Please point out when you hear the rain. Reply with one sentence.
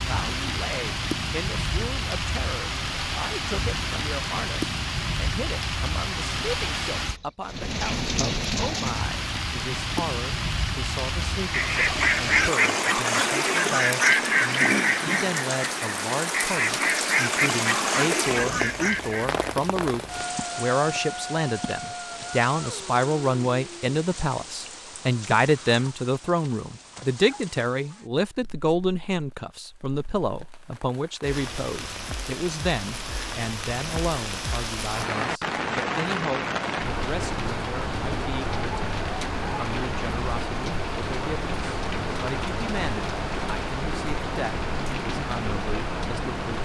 The rain can be heard from 0.0 to 46.6 s.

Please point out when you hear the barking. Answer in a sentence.
The barking can't be heard in this clip.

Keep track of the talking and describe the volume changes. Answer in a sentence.
The loudness of the talking goes up, then down.